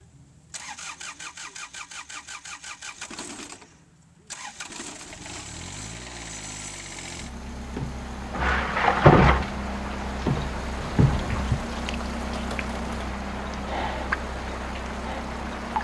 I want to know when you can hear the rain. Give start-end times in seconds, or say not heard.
5.5-15.7.